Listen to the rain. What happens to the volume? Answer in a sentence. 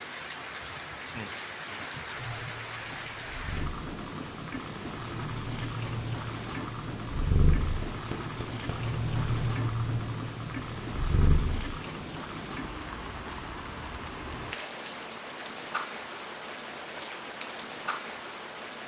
The loudness of the rain stays about the same.